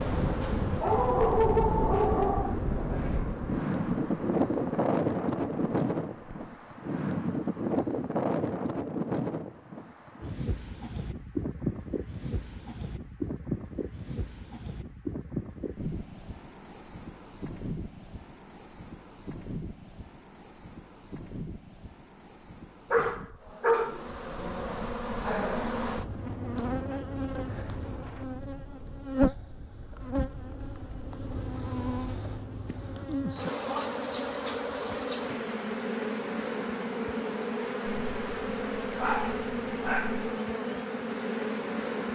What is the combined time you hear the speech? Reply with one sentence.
The speech can't be heard in this clip.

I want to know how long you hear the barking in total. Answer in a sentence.
You can hear the barking for 5 seconds altogether.